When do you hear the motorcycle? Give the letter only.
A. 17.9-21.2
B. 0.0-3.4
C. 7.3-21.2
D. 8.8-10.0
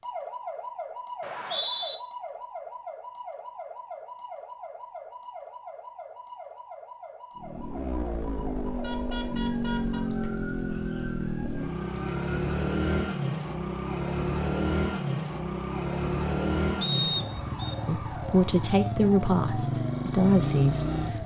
C.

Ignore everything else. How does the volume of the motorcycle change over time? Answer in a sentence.
The volume of the motorcycle stays about the same.